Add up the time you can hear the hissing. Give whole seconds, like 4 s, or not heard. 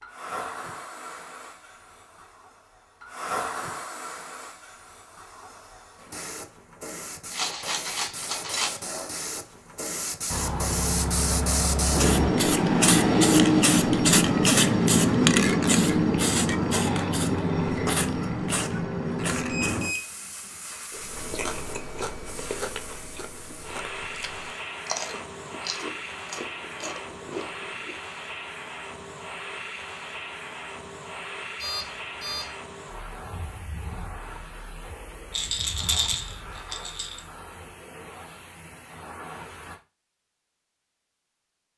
40 s.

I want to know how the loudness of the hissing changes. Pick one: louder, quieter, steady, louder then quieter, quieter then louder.
louder then quieter.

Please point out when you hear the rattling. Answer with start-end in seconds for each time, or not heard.
7.3-8.8, 35.3-37.2.